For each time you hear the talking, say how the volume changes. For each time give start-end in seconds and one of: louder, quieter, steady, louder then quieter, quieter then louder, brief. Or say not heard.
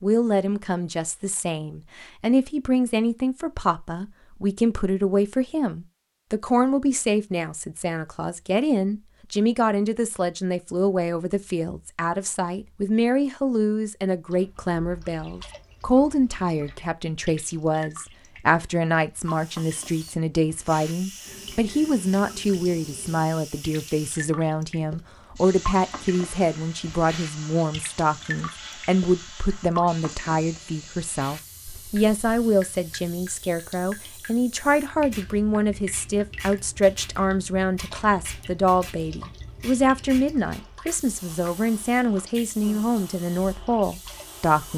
0.0-44.7 steady.